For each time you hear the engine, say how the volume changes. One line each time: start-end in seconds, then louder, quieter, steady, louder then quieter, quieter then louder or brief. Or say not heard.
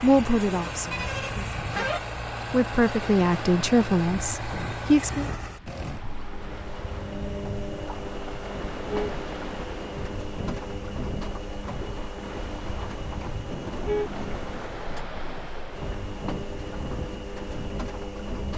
0.0-18.5 steady.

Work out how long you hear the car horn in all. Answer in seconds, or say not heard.
3 s.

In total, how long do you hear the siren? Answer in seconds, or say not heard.
not heard.